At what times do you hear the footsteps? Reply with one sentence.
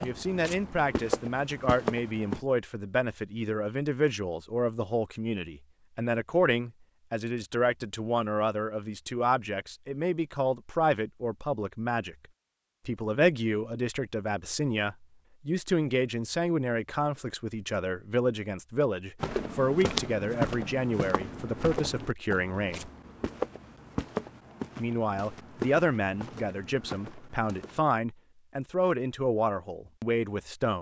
The footsteps can be heard from 0.0 to 2.4 s and from 19.2 to 27.8 s.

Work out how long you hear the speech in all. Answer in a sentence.
The speech can be heard for 28 seconds in total.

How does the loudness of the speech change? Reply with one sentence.
The loudness of the speech stays about the same.